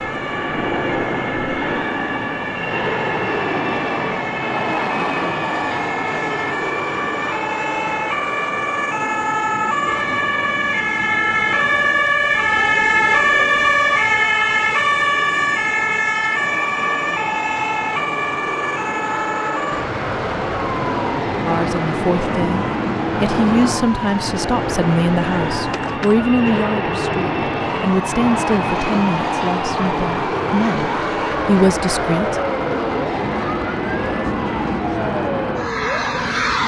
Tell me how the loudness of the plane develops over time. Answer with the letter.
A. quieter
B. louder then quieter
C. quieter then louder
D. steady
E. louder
C.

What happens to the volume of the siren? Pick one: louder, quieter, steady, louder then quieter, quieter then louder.
louder then quieter.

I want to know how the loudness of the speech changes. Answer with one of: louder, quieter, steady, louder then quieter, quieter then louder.
steady.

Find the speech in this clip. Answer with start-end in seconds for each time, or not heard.
21.4-32.4.